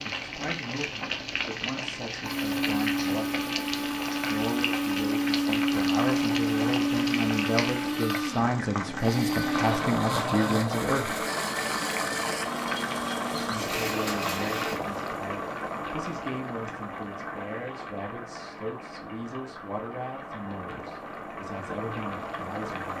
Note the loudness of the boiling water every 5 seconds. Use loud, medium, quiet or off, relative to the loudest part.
loud, loud, loud, medium, medium.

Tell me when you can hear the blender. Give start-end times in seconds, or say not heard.
2.2-14.8.